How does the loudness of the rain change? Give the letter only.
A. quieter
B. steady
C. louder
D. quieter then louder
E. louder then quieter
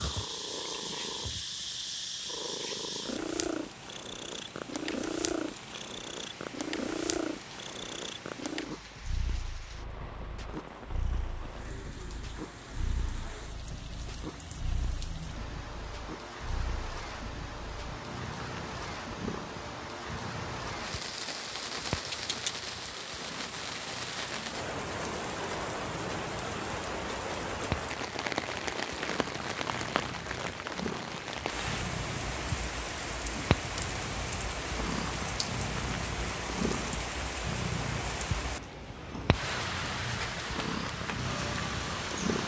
C.